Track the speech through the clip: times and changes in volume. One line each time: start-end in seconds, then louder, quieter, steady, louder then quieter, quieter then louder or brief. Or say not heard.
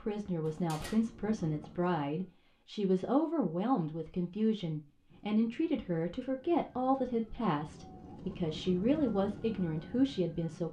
0.0-10.6 steady.